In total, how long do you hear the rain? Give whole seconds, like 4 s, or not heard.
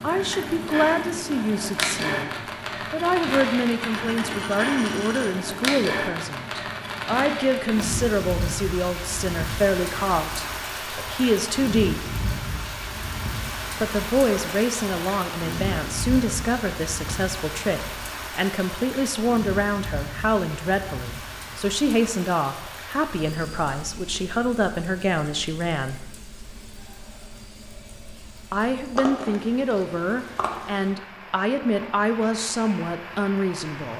34 s.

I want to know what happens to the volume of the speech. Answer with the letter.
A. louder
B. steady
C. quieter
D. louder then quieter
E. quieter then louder
B.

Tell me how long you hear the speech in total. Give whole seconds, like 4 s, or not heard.
30 s.